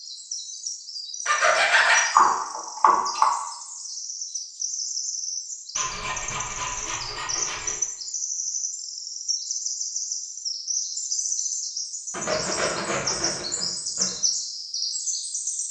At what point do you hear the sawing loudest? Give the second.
2 s.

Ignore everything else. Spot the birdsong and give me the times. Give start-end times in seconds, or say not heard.
0.0-15.6.